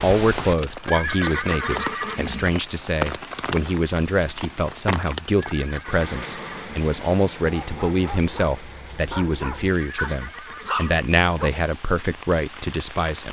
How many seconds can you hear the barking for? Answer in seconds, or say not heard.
4 s.